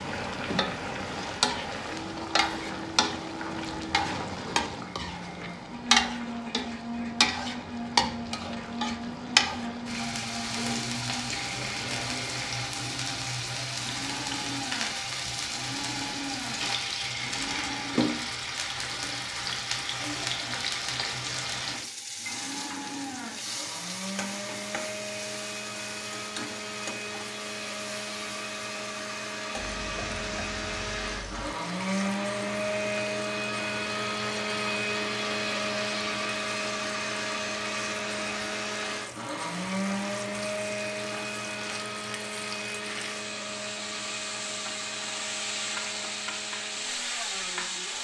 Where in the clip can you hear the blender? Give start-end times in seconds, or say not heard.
0.0-18.1, 22.1-47.9.